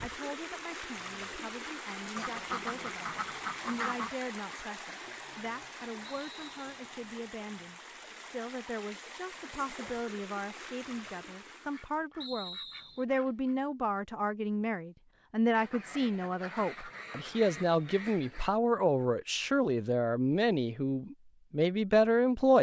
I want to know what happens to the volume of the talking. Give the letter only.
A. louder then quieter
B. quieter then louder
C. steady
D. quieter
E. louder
E.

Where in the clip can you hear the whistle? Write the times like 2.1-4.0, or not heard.
6.0-6.7, 12.2-13.1.